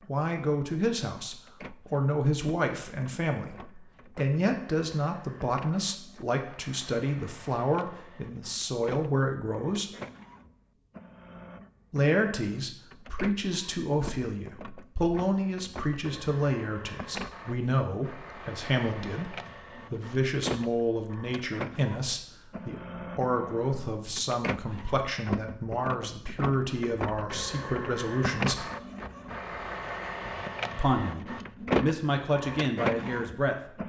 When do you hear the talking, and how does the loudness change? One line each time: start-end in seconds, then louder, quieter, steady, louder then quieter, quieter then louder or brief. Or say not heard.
0.1-9.9 steady
11.9-28.7 steady
30.8-33.5 brief.